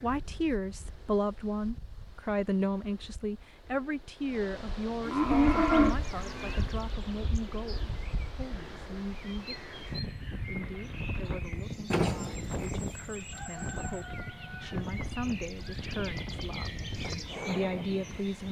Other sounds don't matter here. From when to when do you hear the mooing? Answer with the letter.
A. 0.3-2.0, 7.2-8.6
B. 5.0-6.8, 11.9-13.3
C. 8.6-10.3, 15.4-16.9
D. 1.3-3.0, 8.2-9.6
B.